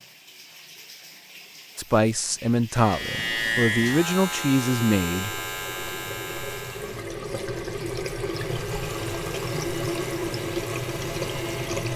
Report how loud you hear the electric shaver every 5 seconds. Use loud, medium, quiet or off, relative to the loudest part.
loud, medium, quiet.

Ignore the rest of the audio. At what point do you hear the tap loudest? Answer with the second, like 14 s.
10 s.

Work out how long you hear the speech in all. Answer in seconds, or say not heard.
4 s.